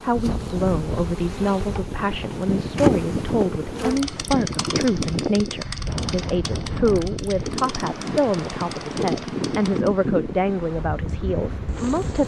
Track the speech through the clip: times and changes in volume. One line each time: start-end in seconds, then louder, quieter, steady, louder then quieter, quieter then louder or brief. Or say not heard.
0.0-12.2 steady.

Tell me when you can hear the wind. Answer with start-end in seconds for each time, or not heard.
0.0-12.2.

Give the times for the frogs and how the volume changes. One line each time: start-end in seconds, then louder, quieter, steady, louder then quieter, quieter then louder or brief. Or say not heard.
not heard.